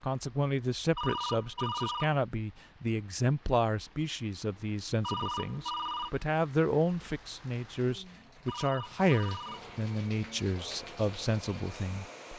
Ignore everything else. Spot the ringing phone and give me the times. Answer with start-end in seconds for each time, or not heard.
0.9-2.2, 5.0-6.1, 8.4-9.8.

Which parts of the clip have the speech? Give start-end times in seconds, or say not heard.
0.0-12.3.